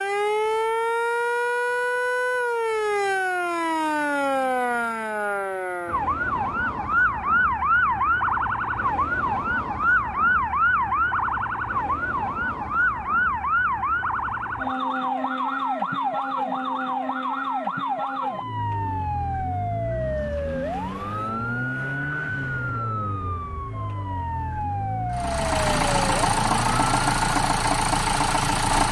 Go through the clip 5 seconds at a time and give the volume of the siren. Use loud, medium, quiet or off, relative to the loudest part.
loud, loud, loud, loud, medium, medium.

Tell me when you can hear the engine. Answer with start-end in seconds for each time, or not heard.
25.1-28.8.